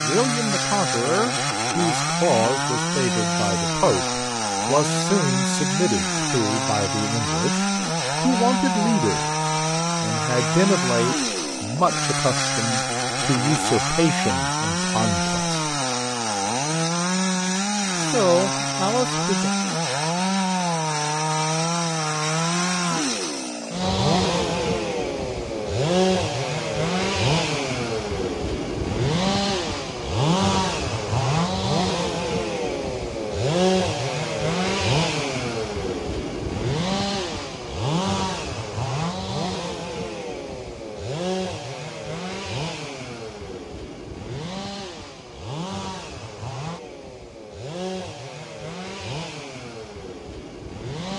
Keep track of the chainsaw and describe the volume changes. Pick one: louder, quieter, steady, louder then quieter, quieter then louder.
quieter.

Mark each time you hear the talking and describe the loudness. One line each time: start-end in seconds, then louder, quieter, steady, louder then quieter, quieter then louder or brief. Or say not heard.
0.0-15.5 steady
17.9-19.5 brief.